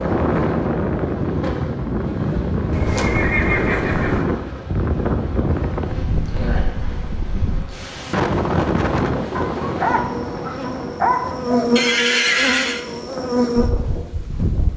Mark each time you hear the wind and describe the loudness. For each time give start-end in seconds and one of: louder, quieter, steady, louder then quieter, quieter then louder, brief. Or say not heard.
0.0-14.7 quieter.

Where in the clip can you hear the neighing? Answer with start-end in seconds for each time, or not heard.
2.7-4.2, 11.8-12.8.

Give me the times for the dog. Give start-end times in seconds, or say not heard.
9.3-11.7.